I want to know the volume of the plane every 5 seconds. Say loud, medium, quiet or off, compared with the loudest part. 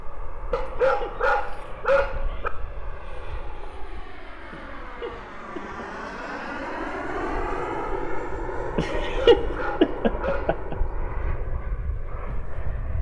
medium, loud, medium.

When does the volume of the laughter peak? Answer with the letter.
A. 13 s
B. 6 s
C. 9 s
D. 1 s
C.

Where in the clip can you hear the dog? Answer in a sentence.
You can hear the dog from 0.5 to 2.5 s and from 9.0 to 10.5 s.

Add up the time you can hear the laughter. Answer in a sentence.
The laughter can be heard for 5 seconds in total.